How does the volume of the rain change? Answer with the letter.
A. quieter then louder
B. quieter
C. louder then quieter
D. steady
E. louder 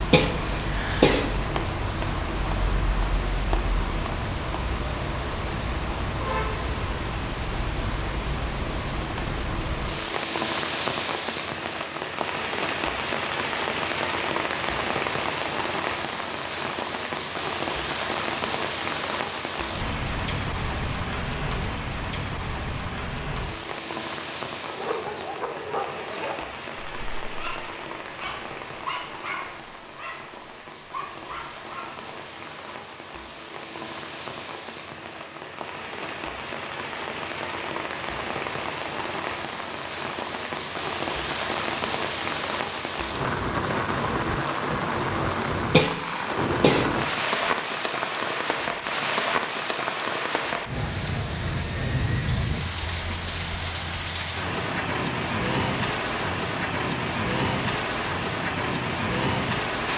A.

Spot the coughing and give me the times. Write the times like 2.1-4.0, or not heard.
0.1-1.4, 45.7-47.5.